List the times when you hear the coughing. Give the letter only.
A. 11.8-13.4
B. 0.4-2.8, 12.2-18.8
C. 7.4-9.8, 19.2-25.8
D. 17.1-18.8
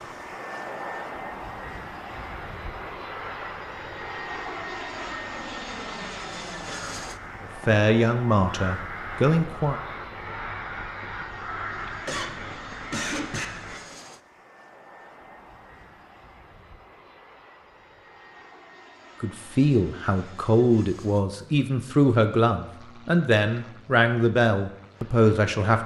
A.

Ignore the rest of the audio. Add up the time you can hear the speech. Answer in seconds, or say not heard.
9 s.